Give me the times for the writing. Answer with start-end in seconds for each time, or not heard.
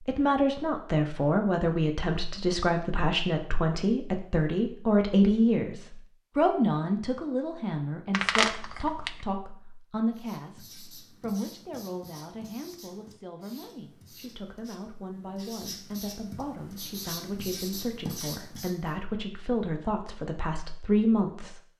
10.1-18.9.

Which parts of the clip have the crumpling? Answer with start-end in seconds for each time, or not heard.
8.1-9.1.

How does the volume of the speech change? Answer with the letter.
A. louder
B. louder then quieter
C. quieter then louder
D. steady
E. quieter
C.